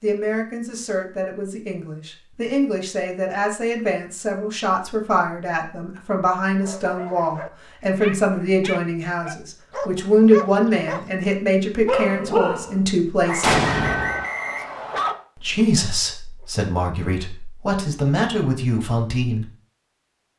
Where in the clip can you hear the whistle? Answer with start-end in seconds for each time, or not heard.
13.2-15.2.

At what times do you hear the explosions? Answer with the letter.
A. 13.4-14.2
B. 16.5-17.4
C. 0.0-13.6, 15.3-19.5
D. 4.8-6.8
A.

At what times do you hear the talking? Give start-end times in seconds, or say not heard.
0.0-13.6, 15.3-19.5.